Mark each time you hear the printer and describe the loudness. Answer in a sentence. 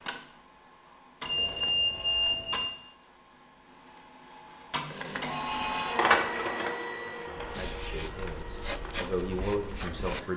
You can hear the printer from 0.0 to 10.3 s, getting louder then quieter.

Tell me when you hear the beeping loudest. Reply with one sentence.
The volume of the beeping peaks at 2 seconds.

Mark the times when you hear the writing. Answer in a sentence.
You can hear the writing from 7.3 to 10.2 s.